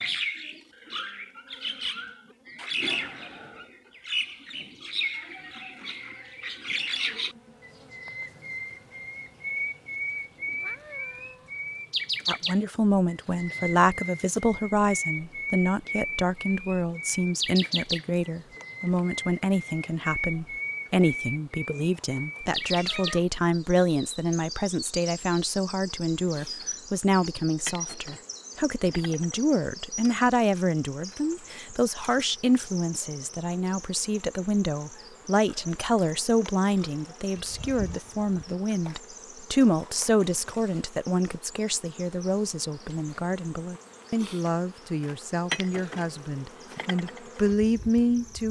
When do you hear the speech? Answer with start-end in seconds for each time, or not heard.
12.2-48.4.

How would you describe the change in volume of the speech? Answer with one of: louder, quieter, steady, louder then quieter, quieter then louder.
steady.